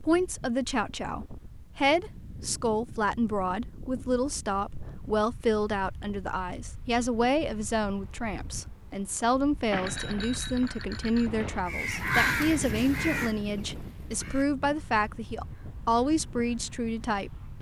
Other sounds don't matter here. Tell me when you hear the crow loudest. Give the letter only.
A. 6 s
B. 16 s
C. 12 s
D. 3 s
C.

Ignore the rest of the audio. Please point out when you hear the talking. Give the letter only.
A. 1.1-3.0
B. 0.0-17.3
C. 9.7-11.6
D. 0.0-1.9
B.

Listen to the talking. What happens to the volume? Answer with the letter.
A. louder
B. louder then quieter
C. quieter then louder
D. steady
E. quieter
D.